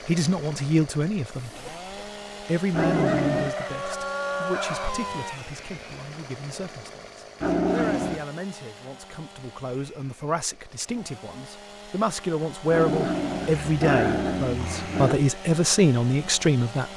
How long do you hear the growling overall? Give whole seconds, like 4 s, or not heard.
4 s.